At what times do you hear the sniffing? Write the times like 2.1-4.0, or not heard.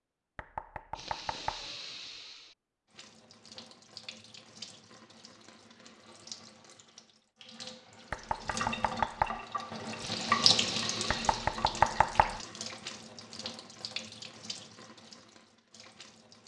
0.9-2.5, 10.0-11.6.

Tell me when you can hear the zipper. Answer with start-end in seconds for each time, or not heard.
not heard.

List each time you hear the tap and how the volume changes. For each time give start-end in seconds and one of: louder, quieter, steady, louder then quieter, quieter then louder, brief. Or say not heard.
2.9-16.4 louder then quieter.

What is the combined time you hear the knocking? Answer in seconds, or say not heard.
4 s.